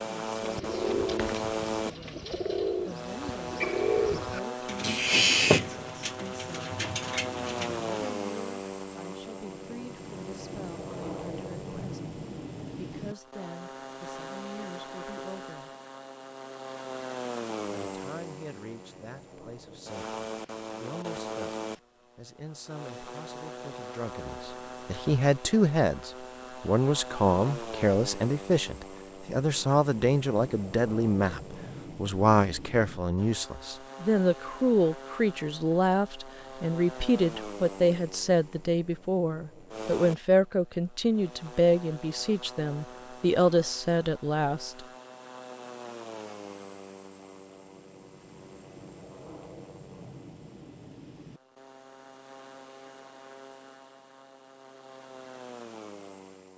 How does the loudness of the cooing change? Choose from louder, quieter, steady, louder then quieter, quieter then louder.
louder then quieter.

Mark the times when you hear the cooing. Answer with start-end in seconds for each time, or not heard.
0.3-8.1.